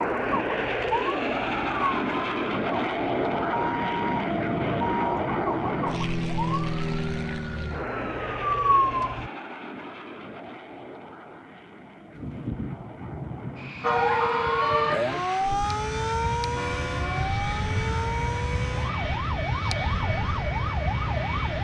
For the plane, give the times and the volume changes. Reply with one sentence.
The plane can be heard from 0.0 to 21.5 s, getting quieter then louder.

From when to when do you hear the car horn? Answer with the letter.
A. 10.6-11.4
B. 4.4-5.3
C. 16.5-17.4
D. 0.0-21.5
C.